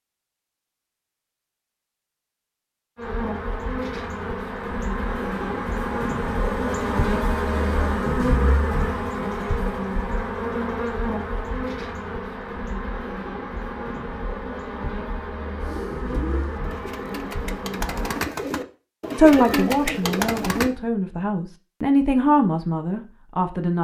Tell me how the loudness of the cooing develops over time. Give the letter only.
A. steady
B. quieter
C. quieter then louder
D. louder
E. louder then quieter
D.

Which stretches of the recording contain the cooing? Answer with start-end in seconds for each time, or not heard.
15.6-20.7.